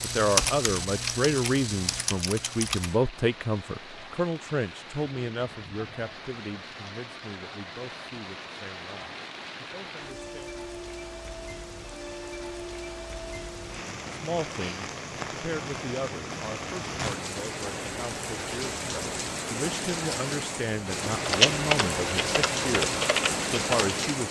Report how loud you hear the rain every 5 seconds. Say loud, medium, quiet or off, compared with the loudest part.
quiet, medium, medium, loud, loud.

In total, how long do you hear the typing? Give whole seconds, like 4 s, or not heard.
6 s.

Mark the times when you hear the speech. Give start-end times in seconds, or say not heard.
0.0-10.6, 14.1-24.2.